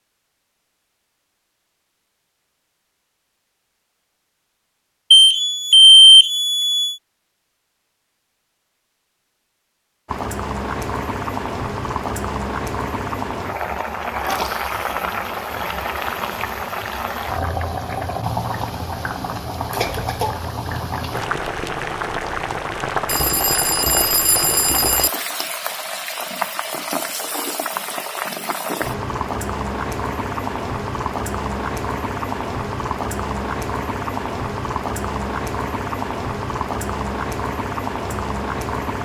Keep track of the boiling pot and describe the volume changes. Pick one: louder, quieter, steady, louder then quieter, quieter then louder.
steady.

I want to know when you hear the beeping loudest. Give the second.
6 s.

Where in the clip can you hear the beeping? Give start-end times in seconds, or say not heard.
5.1-7.0, 23.1-25.1.